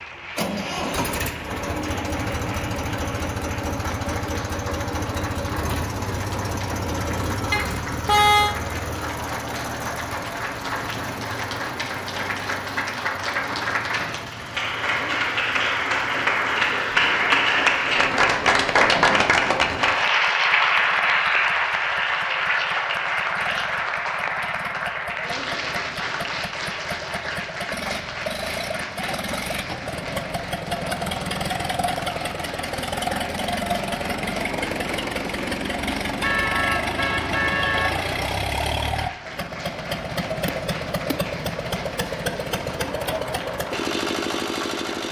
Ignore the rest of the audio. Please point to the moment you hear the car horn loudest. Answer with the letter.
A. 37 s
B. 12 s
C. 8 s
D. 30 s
C.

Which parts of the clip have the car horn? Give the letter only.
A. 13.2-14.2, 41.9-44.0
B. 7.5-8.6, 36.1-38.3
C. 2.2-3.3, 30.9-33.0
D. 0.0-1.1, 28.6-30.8
B.